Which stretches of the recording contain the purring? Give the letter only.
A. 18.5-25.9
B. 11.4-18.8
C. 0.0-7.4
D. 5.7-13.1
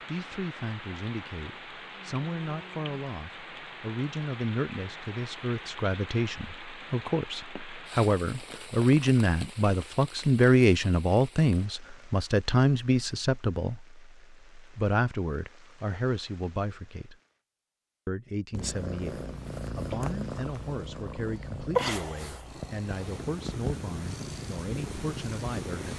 A.